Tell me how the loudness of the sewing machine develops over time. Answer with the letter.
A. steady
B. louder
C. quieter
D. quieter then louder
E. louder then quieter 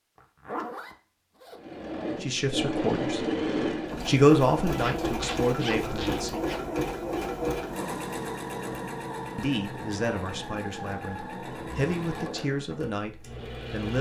C.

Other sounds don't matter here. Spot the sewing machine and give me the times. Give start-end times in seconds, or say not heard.
1.6-13.9.